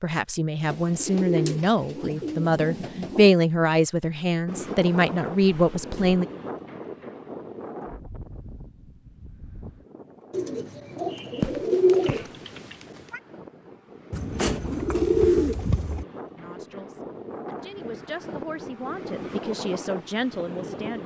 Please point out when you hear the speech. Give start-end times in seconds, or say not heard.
0.0-6.2, 16.4-21.0.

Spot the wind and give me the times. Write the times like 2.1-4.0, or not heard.
4.5-21.0.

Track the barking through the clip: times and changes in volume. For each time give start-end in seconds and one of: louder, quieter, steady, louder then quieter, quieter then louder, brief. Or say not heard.
not heard.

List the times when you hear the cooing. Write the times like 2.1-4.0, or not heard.
0.7-3.3, 10.3-12.3, 14.1-16.1.